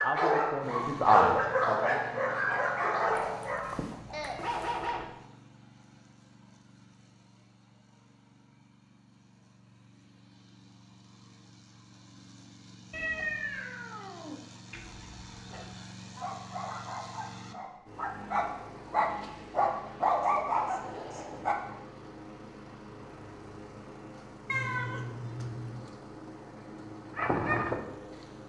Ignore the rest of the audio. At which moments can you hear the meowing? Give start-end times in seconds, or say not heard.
3.0-5.0, 12.9-14.4, 24.4-25.9.